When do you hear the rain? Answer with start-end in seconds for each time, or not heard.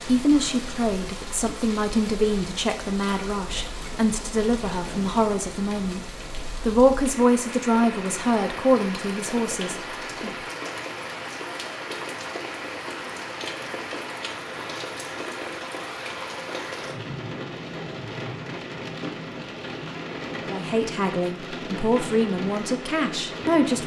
0.0-23.8.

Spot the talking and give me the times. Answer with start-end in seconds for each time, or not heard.
0.0-10.3, 20.4-23.8.